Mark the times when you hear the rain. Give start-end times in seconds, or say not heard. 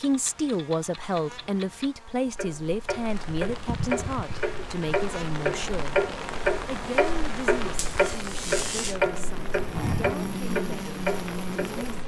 2.9-12.0.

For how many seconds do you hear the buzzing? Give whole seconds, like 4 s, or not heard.
12 s.